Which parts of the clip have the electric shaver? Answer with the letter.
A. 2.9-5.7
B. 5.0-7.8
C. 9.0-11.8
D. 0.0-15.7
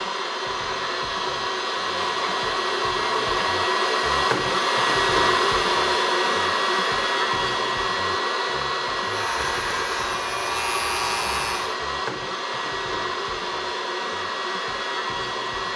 C.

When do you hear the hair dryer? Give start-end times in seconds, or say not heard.
0.0-15.7.